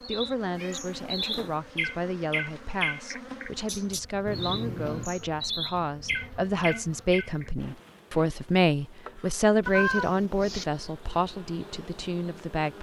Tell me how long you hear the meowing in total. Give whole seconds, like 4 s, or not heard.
3 s.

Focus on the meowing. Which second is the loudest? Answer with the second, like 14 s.
10 s.